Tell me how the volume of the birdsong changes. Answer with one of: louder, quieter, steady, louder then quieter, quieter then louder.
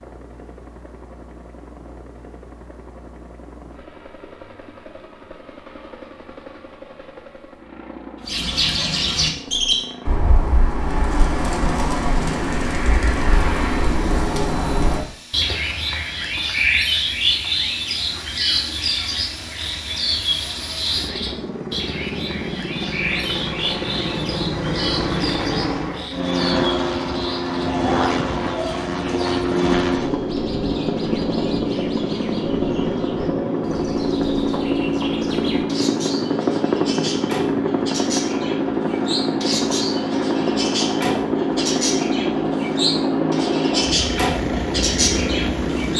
quieter then louder.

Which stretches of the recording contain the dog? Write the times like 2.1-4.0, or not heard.
not heard.